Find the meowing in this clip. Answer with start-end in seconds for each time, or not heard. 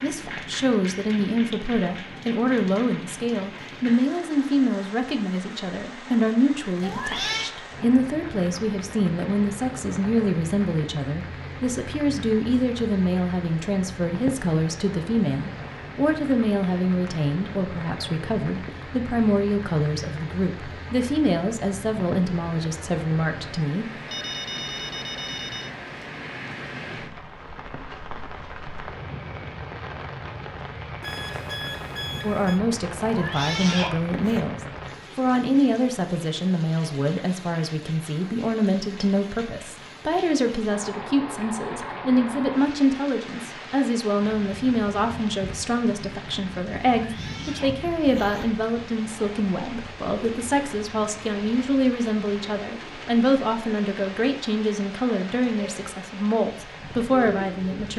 6.8-7.5, 33.0-34.4, 47.0-48.5.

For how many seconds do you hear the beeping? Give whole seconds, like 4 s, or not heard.
3 s.